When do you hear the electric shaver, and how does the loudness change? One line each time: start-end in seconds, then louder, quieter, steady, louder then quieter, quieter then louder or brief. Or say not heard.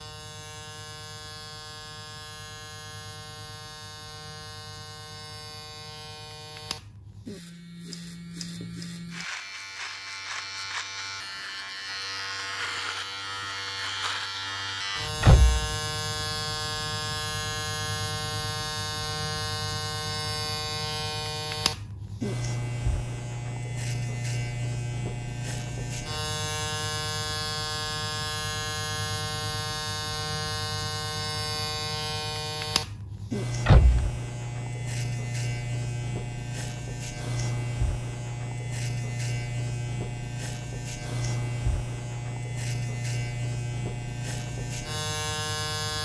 0.0-45.9 louder.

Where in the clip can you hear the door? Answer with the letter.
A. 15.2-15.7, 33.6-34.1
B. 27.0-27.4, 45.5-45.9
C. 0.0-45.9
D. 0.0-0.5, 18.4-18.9
A.